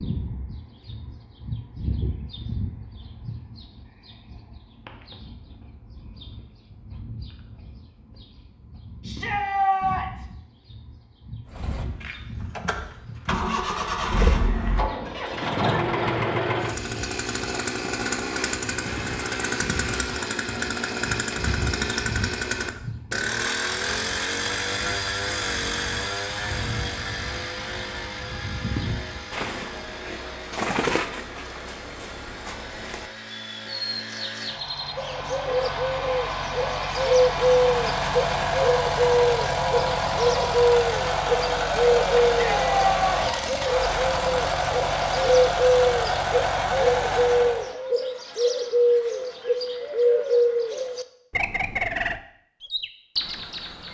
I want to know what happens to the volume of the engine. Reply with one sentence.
The loudness of the engine goes down, then up.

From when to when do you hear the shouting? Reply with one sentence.
You can hear the shouting from 9.0 to 10.2 s and from 42.3 to 43.2 s.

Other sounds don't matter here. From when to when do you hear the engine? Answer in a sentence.
You can hear the engine from 11.4 to 47.8 s.